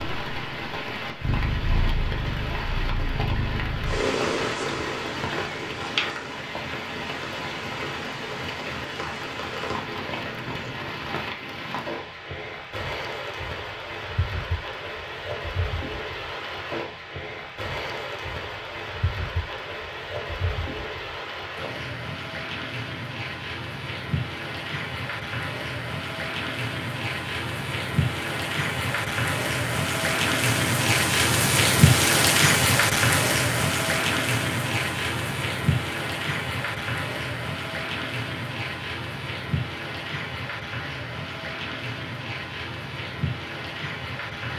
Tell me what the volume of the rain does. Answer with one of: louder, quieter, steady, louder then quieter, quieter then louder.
louder then quieter.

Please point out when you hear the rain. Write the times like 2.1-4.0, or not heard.
0.0-44.5.